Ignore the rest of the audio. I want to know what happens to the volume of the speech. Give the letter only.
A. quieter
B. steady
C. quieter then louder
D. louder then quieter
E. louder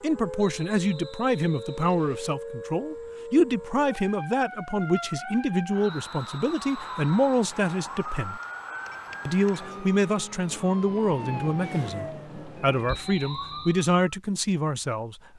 B.